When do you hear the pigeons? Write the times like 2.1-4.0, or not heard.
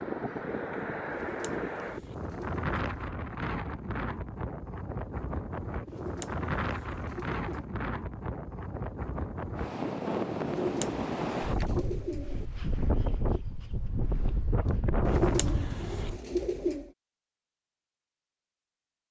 1.1-3.1, 5.8-7.7, 10.4-12.5, 15.0-16.9.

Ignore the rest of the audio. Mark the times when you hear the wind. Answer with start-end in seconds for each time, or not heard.
0.0-16.2.